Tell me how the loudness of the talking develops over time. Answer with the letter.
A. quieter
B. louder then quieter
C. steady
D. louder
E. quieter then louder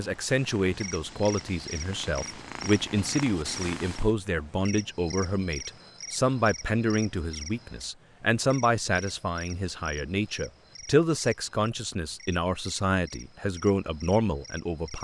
C.